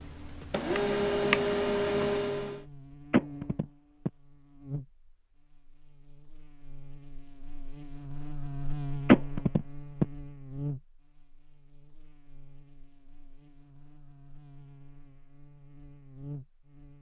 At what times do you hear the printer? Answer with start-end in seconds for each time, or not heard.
0.0-2.6.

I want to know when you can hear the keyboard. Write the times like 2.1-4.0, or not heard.
not heard.